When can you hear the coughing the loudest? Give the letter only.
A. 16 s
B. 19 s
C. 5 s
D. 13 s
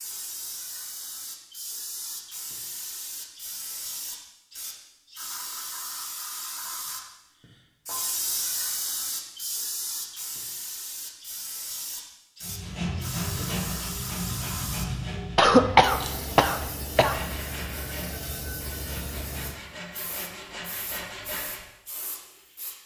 A.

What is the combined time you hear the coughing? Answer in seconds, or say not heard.
2 s.